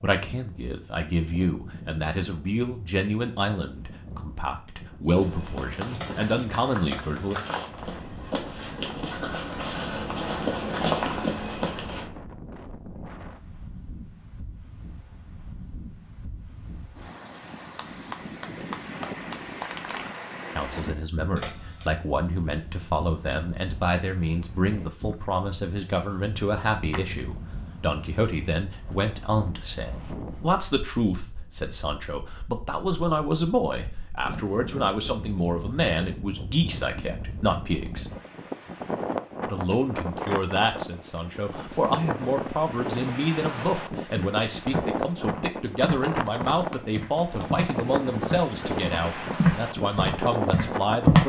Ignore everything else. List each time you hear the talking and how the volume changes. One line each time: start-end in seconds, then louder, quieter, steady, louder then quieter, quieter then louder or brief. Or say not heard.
0.0-7.3 steady
20.6-38.0 steady
39.5-51.2 steady.